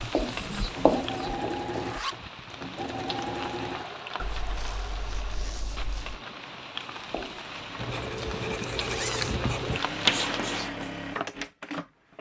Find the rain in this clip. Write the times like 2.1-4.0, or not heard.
0.0-10.4.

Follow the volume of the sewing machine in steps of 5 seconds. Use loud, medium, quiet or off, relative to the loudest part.
loud, medium, loud.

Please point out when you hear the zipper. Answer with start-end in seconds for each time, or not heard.
1.7-2.2, 4.2-6.2, 8.2-9.4.